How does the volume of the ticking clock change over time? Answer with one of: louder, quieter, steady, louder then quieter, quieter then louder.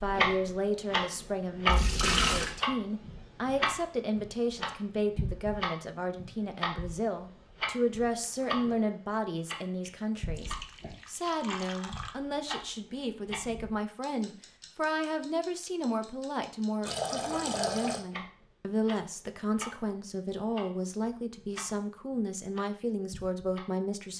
quieter.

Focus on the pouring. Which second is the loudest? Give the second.
2 s.